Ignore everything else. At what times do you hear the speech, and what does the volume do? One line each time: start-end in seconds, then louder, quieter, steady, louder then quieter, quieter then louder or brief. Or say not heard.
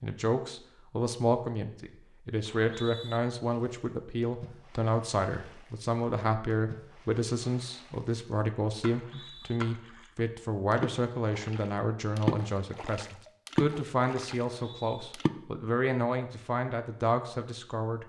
0.0-18.0 steady.